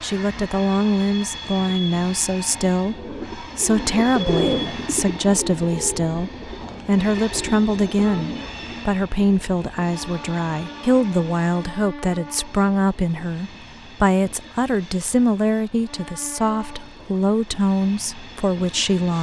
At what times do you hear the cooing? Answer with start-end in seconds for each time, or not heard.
2.9-8.8.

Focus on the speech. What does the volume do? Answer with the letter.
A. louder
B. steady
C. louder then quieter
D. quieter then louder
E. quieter
B.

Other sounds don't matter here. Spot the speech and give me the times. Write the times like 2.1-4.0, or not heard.
0.0-19.1.